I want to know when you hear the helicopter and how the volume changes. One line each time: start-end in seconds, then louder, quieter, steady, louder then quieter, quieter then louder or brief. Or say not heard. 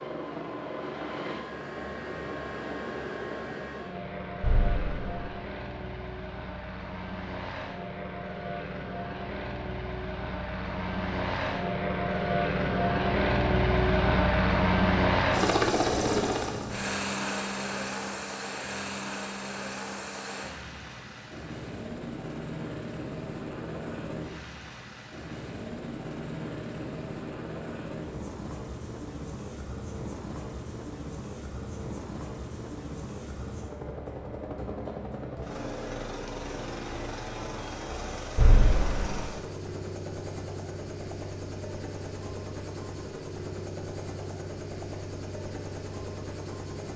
0.0-46.9 louder then quieter.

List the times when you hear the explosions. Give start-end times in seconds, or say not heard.
4.4-5.3, 38.4-39.2.